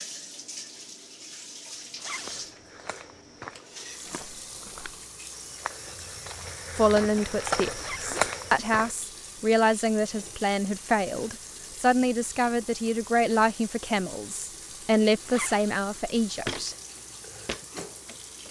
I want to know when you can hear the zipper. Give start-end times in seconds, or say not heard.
1.9-2.4, 7.8-8.2, 15.2-15.7.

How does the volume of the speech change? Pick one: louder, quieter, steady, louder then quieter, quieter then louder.
steady.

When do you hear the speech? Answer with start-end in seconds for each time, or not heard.
6.8-16.8.